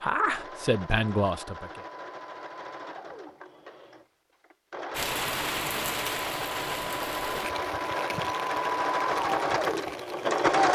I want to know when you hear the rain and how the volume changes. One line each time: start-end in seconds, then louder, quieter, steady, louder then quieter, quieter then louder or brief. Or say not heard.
4.9-10.4 quieter.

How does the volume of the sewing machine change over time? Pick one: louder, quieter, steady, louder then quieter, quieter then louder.
louder.